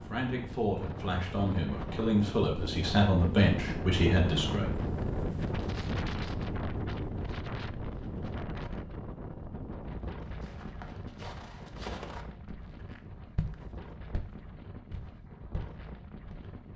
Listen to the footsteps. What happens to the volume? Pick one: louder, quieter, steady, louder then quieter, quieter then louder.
louder then quieter.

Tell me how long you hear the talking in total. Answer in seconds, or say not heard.
5 s.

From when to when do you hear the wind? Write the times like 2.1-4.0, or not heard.
0.0-16.7.